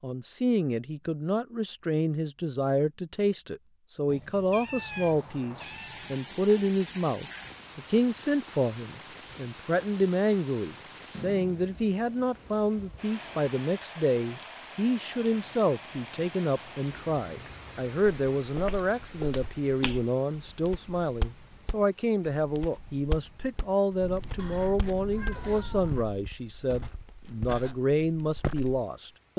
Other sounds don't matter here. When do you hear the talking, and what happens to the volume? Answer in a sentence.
The talking can be heard from 0.0 to 29.3 s, at a steady volume.